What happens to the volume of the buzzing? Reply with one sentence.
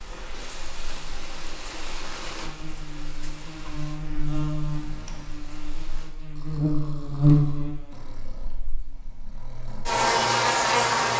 The loudness of the buzzing goes up.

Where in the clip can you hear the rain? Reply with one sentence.
You can hear the rain from 0.0 to 6.2 s.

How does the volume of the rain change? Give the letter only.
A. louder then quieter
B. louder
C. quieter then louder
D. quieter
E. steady
D.